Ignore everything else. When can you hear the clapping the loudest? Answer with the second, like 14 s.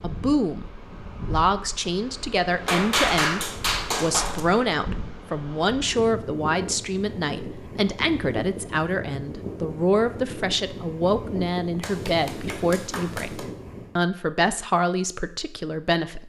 3 s.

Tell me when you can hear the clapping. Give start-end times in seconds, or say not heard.
2.6-4.4, 11.8-13.4.